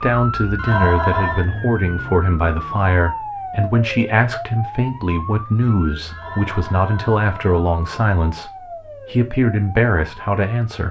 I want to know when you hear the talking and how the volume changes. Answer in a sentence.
You can hear the talking from 0.0 to 10.8 s, at a steady volume.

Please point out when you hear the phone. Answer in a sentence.
The phone can be heard from 0.6 to 1.4 s and from 6.0 to 7.6 s.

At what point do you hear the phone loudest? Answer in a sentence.
The loudest moment of the phone is at 1 second.